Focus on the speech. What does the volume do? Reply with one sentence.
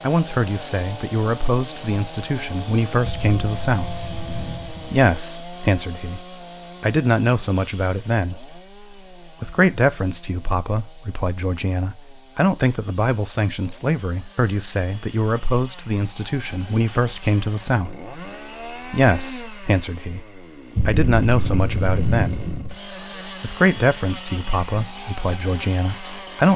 The loudness of the speech stays about the same.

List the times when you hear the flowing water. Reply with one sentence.
The flowing water can't be heard in this clip.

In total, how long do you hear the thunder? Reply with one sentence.
You can hear the thunder for 4 seconds altogether.